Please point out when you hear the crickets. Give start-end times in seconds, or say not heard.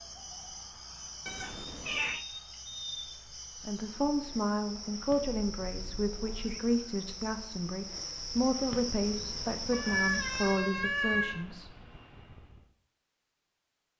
0.0-10.6.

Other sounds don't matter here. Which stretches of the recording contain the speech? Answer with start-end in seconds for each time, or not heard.
3.6-11.7.